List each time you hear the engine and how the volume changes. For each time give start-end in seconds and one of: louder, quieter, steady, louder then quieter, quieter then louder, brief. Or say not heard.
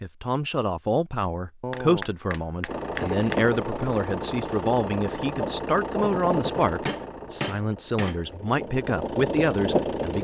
2.6-10.1 quieter then louder.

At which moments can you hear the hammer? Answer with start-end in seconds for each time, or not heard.
1.6-3.5, 6.8-8.4.